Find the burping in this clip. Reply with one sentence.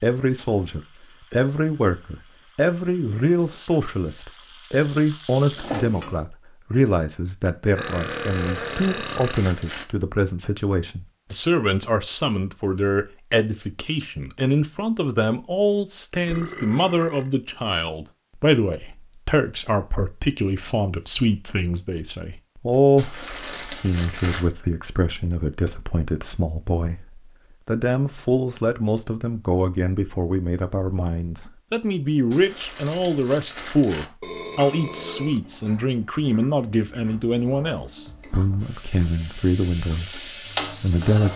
You can hear the burping from 7.8 to 9.4 s, from 16.1 to 17.5 s and from 34.2 to 35.9 s.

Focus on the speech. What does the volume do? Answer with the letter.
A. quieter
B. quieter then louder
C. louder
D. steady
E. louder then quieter
D.